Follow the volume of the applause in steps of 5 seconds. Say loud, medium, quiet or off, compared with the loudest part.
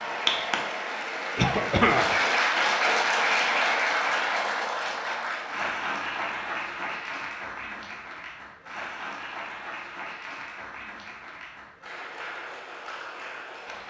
loud, medium, quiet.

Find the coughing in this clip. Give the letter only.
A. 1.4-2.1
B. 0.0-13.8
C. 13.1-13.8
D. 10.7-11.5
A.